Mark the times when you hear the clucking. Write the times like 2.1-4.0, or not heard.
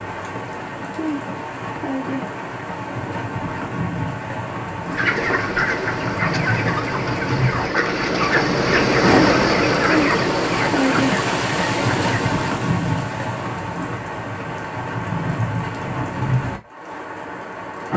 4.8-12.3.